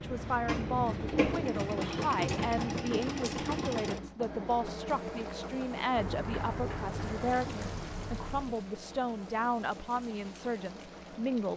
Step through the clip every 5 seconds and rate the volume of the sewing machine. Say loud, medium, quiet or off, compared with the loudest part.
loud, medium, quiet.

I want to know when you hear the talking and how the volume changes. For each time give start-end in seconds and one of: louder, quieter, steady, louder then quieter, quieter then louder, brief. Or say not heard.
0.0-11.5 steady.